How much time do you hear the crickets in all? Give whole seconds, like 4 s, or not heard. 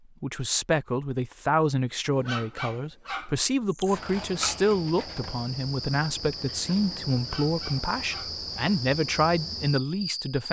7 s.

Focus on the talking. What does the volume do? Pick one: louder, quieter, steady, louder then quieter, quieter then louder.
steady.